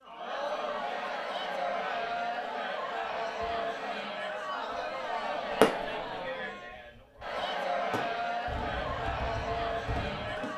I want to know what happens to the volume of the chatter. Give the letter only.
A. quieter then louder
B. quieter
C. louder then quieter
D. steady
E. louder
D.